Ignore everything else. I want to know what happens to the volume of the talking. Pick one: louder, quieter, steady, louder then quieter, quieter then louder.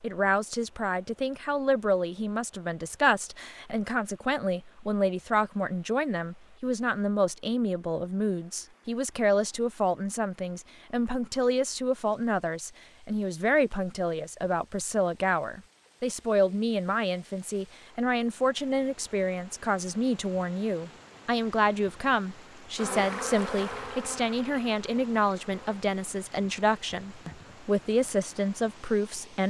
steady.